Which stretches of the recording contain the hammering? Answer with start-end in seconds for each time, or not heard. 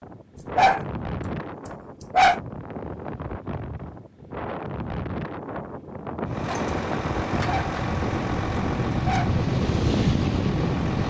not heard.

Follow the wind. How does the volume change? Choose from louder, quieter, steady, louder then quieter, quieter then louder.
louder.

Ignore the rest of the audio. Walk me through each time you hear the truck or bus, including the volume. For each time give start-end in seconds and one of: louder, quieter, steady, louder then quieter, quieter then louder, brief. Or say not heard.
6.2-11.0 quieter.